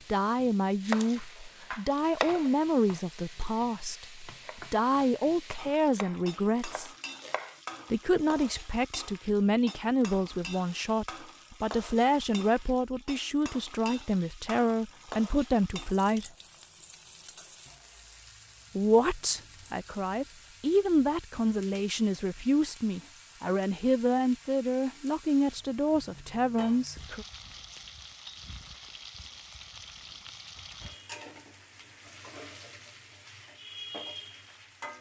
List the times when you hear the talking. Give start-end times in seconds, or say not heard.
0.1-6.9, 7.9-16.2, 18.8-27.2.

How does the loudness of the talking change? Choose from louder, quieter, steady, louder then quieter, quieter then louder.
steady.